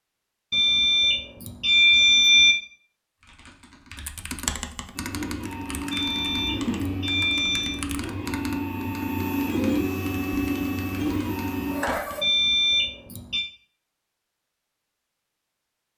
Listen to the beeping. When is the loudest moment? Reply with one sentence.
The volume of the beeping peaks at 2 seconds.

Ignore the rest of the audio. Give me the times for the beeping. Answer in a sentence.
The beeping can be heard from 0.5 to 2.5 s, from 5.9 to 7.8 s and from 12.2 to 13.4 s.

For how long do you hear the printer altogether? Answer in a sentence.
You can hear the printer for 7 seconds altogether.